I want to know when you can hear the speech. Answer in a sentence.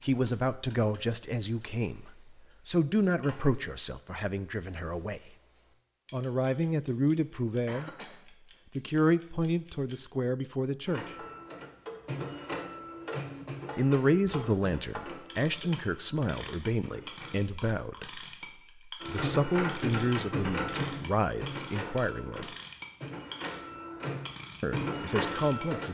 You can hear the speech from 0.0 to 5.3 s, from 6.1 to 7.9 s, from 8.8 to 11.2 s, from 13.8 to 18.2 s, from 18.9 to 22.5 s and from 24.6 to 25.8 s.